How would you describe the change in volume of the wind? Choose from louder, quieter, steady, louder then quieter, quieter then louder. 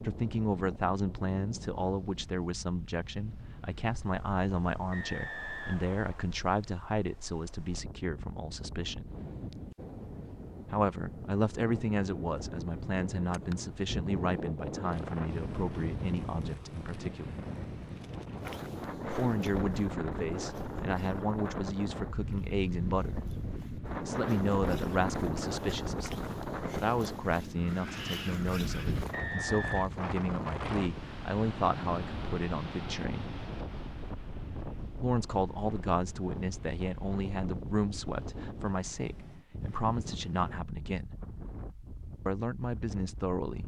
louder then quieter.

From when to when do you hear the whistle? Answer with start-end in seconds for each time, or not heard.
4.9-6.2, 29.1-29.9.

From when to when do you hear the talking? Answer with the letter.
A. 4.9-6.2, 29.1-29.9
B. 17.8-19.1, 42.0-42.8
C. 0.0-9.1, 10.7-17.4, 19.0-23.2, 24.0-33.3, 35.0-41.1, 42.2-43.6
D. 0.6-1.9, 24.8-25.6
C.